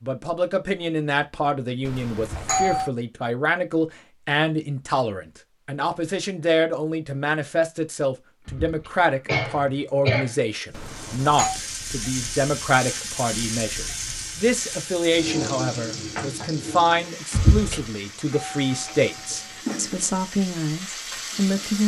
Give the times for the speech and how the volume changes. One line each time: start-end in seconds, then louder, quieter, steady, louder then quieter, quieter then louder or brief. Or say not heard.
0.0-21.8 steady.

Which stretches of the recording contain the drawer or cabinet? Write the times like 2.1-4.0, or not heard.
not heard.